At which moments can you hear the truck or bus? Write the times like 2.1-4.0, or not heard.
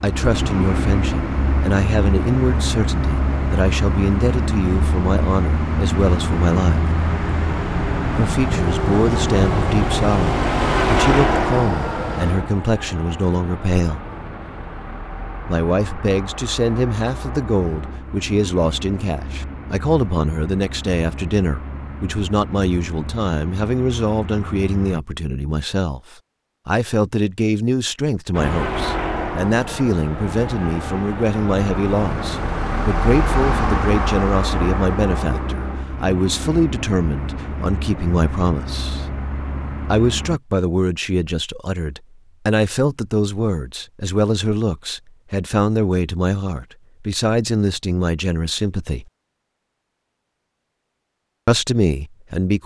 0.0-25.0, 28.3-40.4.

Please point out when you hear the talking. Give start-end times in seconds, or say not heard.
0.0-6.8, 8.2-14.0, 15.4-26.0, 26.6-39.0, 39.9-49.0, 51.5-52.6.